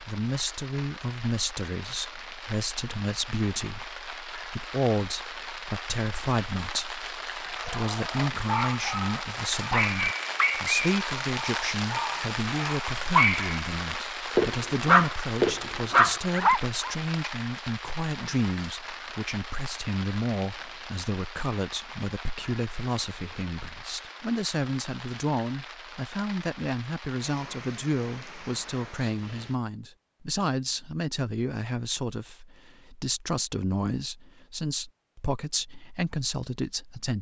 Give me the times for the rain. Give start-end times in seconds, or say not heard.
0.0-29.6.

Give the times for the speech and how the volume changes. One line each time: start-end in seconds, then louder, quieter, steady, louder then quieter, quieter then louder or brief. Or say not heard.
0.0-37.1 steady.